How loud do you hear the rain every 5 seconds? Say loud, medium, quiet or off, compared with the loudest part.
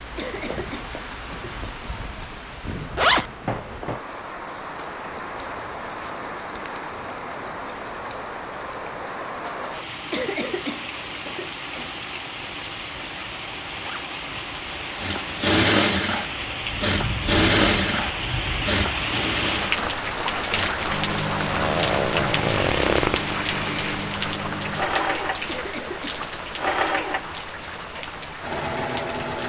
medium, medium, medium, loud, loud, medium.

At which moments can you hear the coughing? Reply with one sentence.
You can hear the coughing from 0.1 to 1.9 s, from 10.1 to 11.9 s and from 25.4 to 26.2 s.